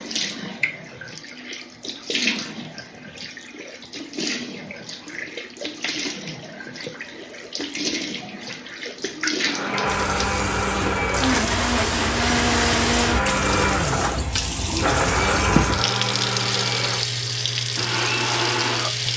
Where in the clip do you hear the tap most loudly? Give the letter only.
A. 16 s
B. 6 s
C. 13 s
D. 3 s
A.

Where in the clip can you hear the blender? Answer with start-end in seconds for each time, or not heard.
9.4-18.9.